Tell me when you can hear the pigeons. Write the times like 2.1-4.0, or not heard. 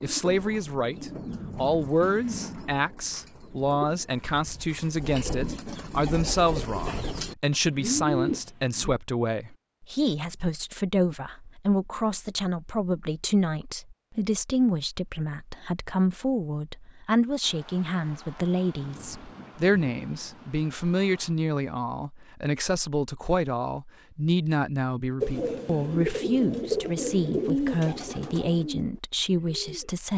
0.0-8.9, 25.2-29.9.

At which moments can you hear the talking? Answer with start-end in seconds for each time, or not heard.
0.0-30.1.